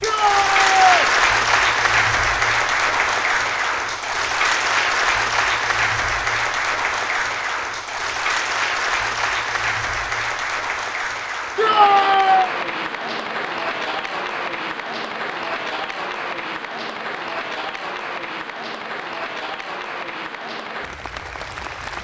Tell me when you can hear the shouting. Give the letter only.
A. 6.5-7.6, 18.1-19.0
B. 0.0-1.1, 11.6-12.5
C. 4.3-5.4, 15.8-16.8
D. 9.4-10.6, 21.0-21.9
B.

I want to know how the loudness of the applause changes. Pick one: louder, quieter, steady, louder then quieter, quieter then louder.
quieter.